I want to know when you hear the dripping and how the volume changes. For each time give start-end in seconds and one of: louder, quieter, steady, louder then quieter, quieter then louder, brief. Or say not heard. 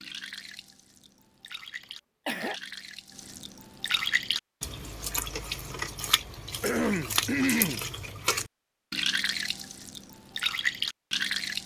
0.0-11.6 louder.